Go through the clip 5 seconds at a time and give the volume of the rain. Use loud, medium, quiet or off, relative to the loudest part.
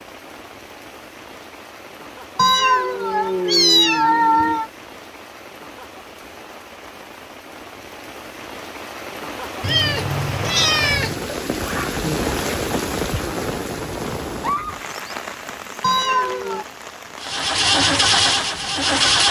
quiet, medium, loud, medium.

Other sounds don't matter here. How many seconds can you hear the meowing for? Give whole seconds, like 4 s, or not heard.
5 s.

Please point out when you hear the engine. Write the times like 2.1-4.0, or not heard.
17.2-19.2.